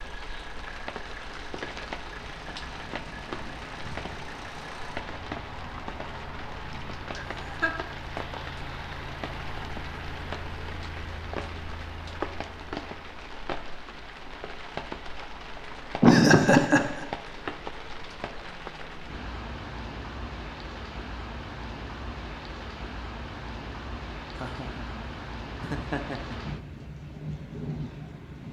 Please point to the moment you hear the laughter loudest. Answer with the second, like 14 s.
16 s.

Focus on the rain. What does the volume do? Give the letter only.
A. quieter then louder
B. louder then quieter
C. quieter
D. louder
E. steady
E.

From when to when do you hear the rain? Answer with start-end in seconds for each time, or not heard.
0.0-28.4.